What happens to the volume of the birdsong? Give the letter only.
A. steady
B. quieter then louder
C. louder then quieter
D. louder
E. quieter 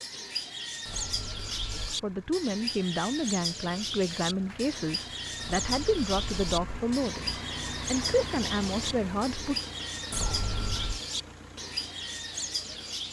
A.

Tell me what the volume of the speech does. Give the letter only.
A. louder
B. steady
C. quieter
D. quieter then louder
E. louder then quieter
B.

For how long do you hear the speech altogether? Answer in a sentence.
You can hear the speech for 8 seconds altogether.